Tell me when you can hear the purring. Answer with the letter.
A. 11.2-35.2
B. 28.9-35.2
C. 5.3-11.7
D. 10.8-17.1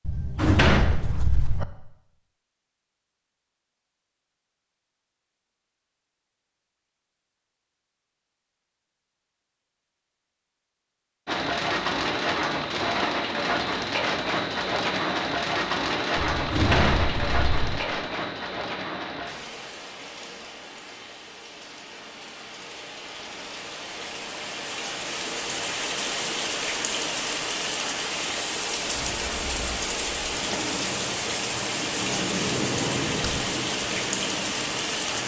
B.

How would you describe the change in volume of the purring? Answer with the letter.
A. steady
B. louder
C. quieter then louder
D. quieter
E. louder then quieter
E.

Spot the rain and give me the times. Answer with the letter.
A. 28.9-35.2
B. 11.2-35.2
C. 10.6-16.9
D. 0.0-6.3
B.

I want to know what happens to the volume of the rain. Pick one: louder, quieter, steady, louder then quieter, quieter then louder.
quieter then louder.